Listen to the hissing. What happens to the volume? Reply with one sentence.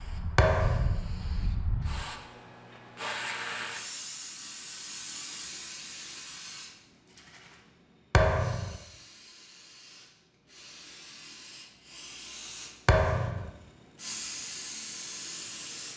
The volume of the hissing goes down, then up.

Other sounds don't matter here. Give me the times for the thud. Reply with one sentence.
You can hear the thud from 0.3 to 1.0 s, from 8.1 to 8.8 s and from 12.8 to 13.5 s.